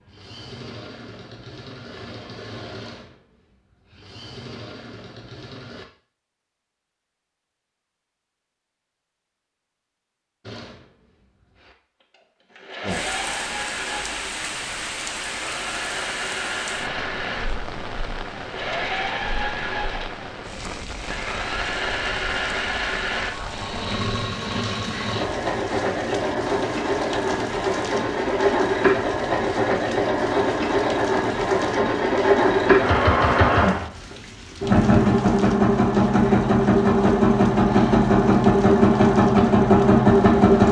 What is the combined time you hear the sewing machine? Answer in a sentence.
You can hear the sewing machine for 36 seconds altogether.